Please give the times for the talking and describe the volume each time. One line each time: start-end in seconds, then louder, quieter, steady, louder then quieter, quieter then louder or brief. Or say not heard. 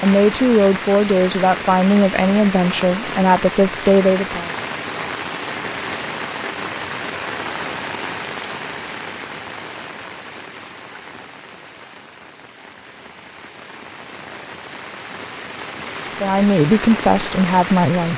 0.0-4.5 steady
16.2-18.1 brief.